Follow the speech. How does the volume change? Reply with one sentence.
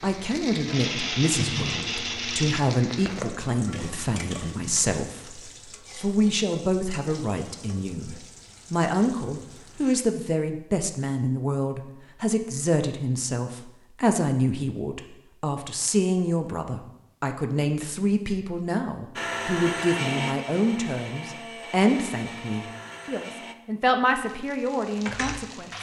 The volume of the speech stays about the same.